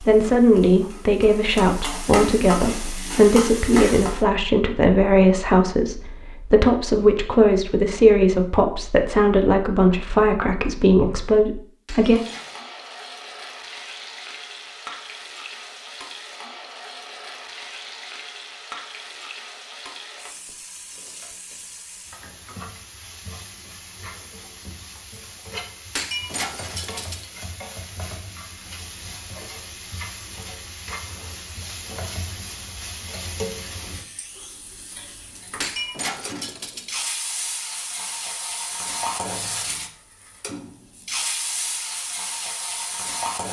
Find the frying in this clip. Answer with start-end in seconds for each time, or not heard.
0.0-4.2, 12.0-43.4.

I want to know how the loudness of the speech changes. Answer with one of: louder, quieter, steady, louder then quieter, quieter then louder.
steady.